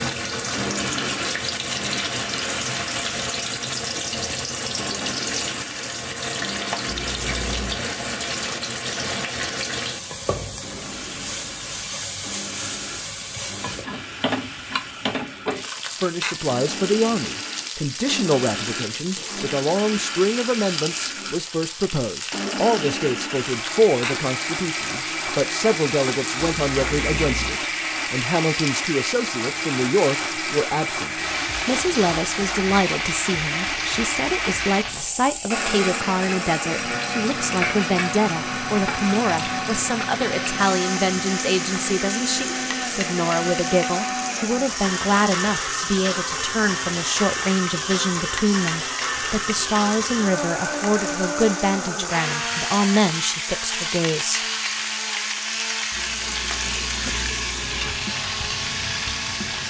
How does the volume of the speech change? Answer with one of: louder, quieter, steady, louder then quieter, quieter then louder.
steady.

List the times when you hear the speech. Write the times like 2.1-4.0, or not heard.
16.0-54.4.